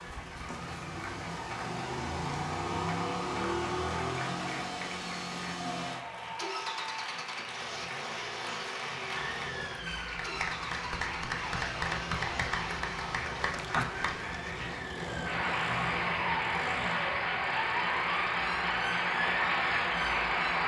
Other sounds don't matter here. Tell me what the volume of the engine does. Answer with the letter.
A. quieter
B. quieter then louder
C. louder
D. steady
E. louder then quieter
A.